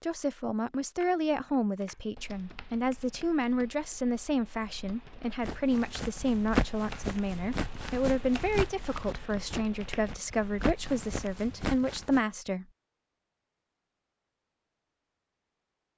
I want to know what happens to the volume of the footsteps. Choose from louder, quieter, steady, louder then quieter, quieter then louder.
quieter then louder.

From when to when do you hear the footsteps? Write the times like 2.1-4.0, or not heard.
5.4-12.2.